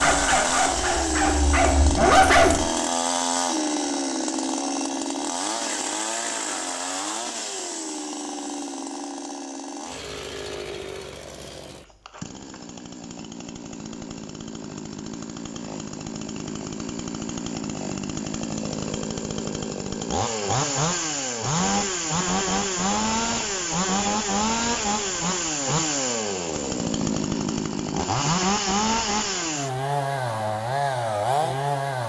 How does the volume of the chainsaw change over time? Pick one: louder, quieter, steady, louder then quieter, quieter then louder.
quieter then louder.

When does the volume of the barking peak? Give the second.
2 s.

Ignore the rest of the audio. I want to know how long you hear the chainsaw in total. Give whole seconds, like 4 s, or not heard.
32 s.